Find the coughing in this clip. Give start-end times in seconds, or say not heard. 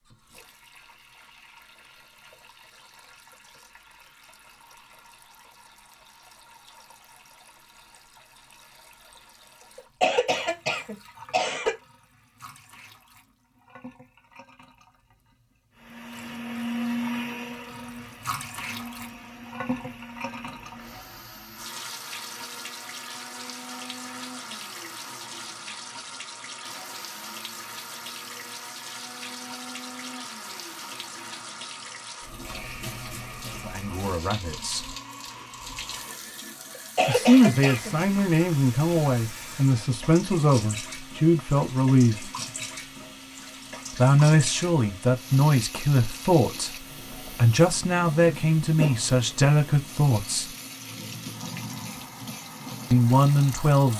9.8-11.8, 37.0-37.9.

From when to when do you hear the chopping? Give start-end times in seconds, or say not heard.
not heard.